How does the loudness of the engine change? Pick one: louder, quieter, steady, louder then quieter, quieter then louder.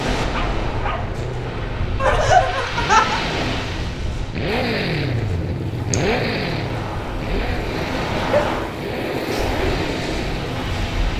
louder then quieter.